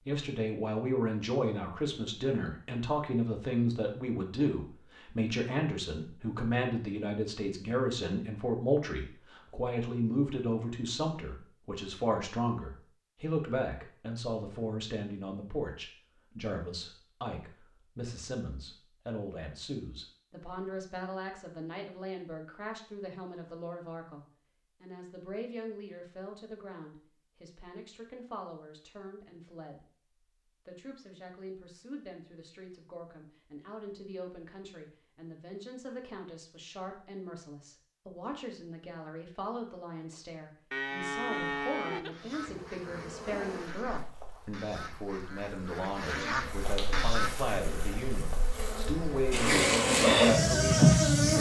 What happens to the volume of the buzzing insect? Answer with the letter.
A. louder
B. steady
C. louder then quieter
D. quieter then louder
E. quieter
D.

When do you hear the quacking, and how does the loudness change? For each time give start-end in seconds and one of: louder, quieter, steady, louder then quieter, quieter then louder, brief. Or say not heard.
42.1-47.5 louder.